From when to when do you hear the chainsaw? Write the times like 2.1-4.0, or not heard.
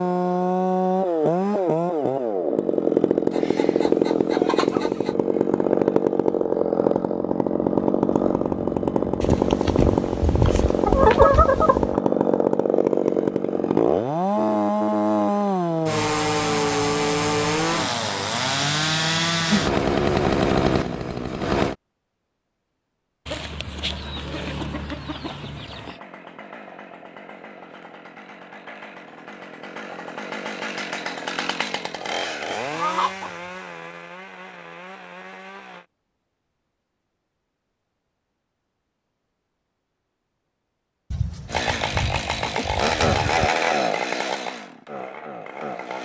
0.0-21.8, 25.4-35.9, 41.5-45.9.